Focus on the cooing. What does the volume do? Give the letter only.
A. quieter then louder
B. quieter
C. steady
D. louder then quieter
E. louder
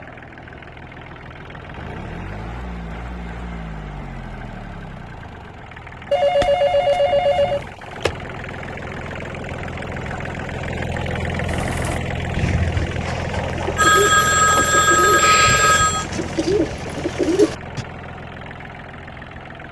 E.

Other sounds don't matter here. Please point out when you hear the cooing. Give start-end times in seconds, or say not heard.
11.4-17.9.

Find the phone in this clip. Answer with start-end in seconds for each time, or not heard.
6.1-8.1, 13.8-16.1.